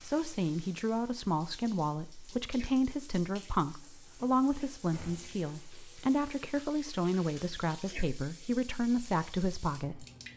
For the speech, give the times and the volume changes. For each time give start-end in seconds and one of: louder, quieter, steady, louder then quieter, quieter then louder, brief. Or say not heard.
0.0-10.1 steady.